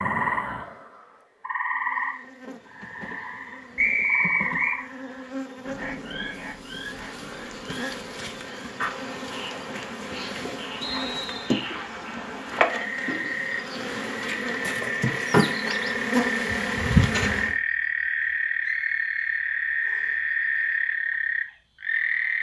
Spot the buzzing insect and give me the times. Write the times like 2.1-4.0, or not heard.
1.7-17.6.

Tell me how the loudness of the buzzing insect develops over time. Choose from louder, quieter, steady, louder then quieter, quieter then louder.
louder.